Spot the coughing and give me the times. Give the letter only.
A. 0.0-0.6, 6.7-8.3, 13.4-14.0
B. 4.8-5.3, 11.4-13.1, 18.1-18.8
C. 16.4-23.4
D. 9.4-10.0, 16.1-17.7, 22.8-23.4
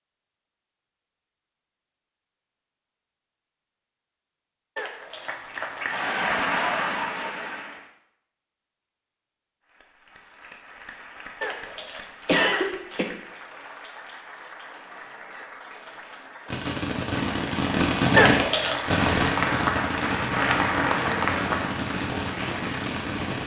B.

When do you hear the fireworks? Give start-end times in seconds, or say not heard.
16.4-23.4.